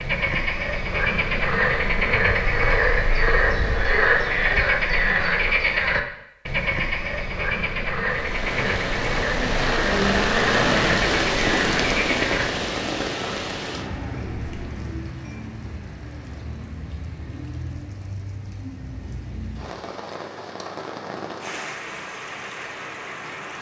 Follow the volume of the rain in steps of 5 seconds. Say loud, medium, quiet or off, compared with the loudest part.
off, loud, loud, quiet, medium.